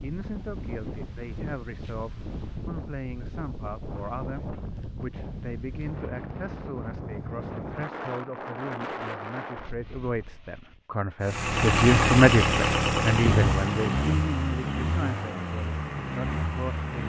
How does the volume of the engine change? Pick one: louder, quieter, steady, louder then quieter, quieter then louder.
quieter.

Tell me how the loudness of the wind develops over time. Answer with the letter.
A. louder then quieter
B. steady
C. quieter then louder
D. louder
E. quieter
B.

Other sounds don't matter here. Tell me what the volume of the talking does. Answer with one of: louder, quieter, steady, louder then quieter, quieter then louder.
louder then quieter.